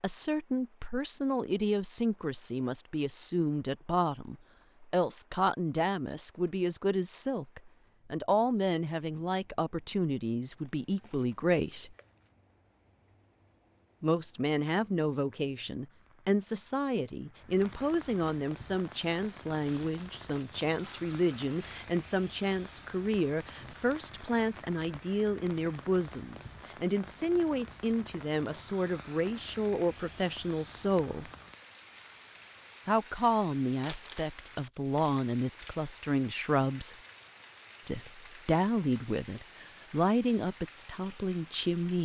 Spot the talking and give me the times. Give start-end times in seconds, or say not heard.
0.0-11.9, 14.0-31.3, 32.9-37.0, 37.9-42.0.